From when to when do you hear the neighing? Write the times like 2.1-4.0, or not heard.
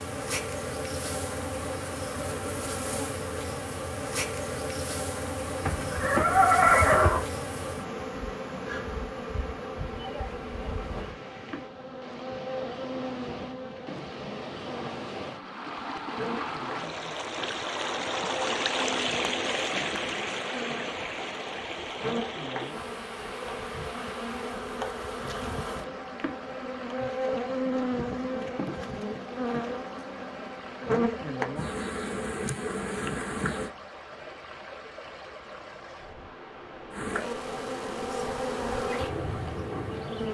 5.6-7.2.